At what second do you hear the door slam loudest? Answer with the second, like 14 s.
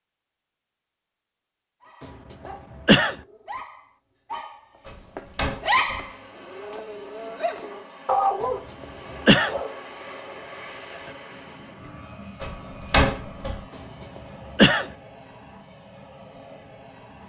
13 s.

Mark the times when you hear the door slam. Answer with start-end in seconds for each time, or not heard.
4.8-6.1, 12.4-13.7.